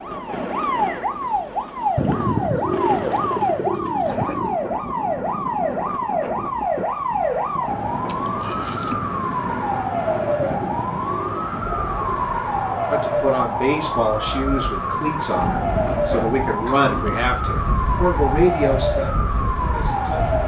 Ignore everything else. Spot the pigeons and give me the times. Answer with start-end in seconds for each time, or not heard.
1.9-4.6, 10.3-12.2.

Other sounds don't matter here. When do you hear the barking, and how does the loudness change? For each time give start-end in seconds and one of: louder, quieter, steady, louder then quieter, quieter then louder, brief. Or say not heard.
not heard.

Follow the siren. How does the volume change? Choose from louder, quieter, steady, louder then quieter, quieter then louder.
steady.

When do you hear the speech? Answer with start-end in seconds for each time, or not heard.
12.9-20.4.